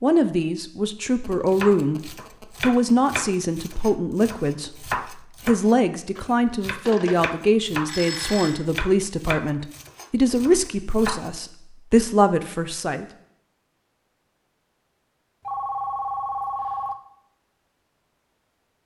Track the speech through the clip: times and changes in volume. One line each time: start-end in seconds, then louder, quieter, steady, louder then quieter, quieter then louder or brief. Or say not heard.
0.0-13.1 steady.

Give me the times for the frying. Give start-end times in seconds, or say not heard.
not heard.